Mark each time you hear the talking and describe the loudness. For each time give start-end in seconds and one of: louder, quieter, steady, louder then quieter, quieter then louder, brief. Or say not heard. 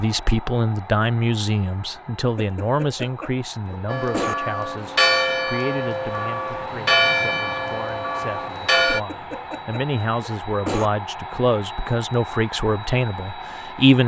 0.0-14.0 quieter then louder.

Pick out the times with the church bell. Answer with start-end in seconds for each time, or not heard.
3.9-9.0.